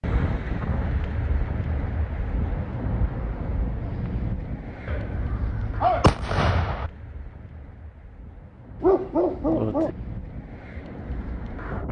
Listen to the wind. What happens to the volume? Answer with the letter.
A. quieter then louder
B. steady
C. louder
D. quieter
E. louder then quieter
A.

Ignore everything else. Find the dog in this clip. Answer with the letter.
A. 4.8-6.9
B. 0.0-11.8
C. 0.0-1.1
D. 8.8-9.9
D.